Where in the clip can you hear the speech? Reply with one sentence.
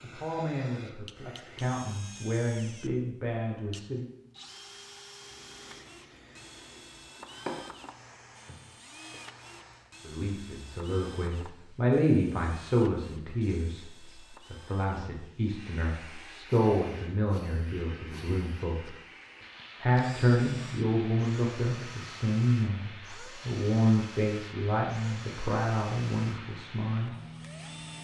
The speech can be heard from 0.0 to 4.0 s, from 10.1 to 13.8 s, from 14.5 to 18.9 s and from 19.8 to 27.1 s.